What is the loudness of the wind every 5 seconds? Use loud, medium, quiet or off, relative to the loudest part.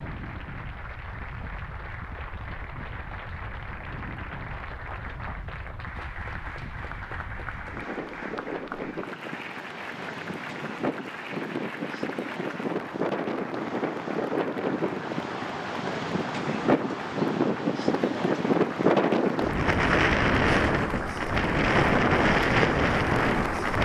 quiet, quiet, medium, loud, loud.